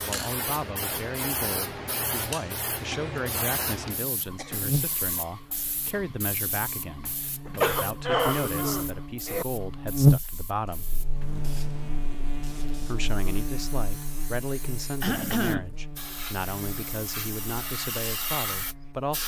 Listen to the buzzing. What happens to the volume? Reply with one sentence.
The loudness of the buzzing goes up, then down.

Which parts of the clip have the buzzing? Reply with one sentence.
You can hear the buzzing from 4.2 to 19.1 s.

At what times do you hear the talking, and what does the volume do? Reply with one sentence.
The talking can be heard from 0.1 to 10.8 s, at a steady volume; and from 12.8 to 19.2 s, at a steady volume.